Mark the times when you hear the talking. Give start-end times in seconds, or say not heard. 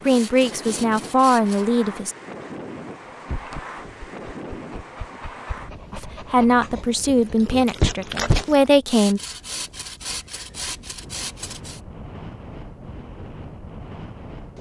0.1-2.1, 5.9-9.2.